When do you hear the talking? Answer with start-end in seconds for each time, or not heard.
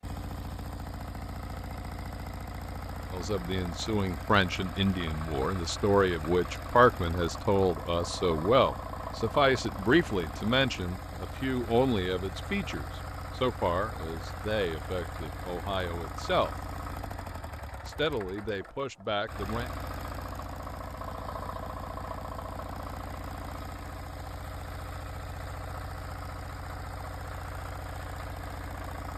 3.1-16.6, 17.9-19.7.